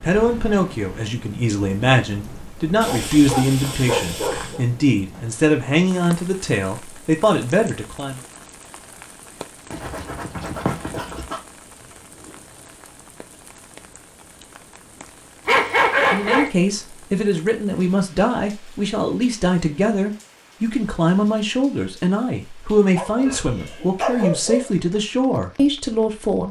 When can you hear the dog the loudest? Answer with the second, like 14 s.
16 s.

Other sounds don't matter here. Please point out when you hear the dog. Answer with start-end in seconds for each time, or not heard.
2.8-4.6, 9.7-11.4, 15.4-16.5, 22.9-24.6.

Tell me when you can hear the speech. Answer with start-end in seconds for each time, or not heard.
0.0-8.2, 16.1-26.4.